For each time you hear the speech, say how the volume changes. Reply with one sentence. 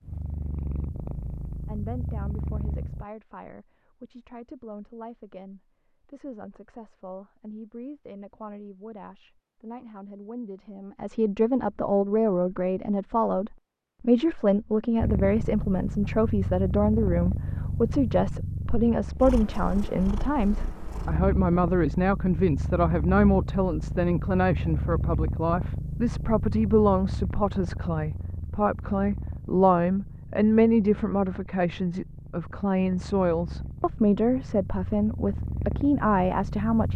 The speech can be heard from 1.6 to 36.9 s, getting louder.